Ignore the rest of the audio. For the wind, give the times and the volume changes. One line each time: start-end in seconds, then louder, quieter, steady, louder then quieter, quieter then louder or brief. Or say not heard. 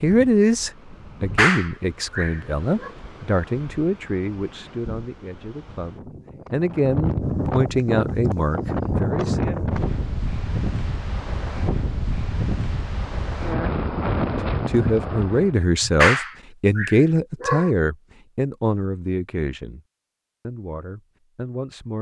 0.0-15.6 louder.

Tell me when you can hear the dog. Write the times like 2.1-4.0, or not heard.
1.2-2.9, 15.8-17.7.